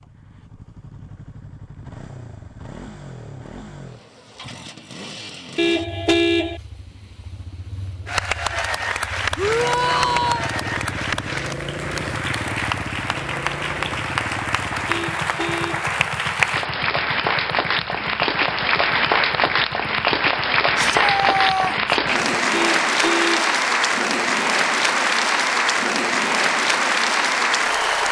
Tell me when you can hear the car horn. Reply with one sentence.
The car horn can be heard from 5.5 to 6.6 s, from 14.8 to 15.9 s and from 22.5 to 23.6 s.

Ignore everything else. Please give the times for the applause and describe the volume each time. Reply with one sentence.
You can hear the applause from 8.1 to 28.0 s, getting louder.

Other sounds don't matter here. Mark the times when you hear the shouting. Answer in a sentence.
The shouting can be heard from 9.3 to 10.5 s and from 20.8 to 22.0 s.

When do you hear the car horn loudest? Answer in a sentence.
The volume of the car horn peaks at 6 seconds.